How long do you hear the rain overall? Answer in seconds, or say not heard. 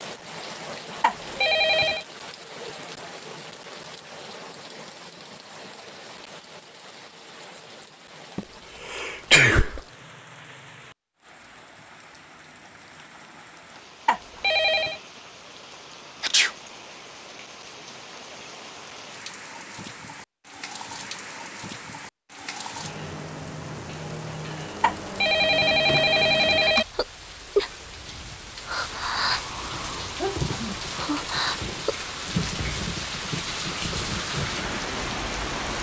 36 s.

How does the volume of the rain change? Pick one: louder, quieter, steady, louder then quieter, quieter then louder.
quieter then louder.